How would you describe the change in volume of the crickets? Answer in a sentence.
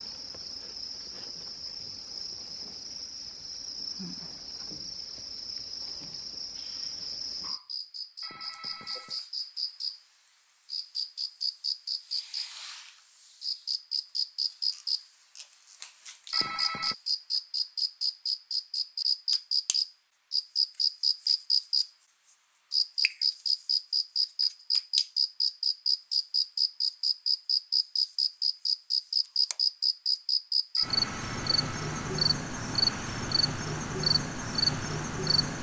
The loudness of the crickets goes up.